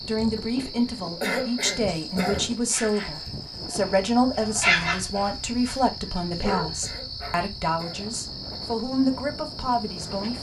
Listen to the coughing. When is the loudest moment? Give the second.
1 s.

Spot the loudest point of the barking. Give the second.
5 s.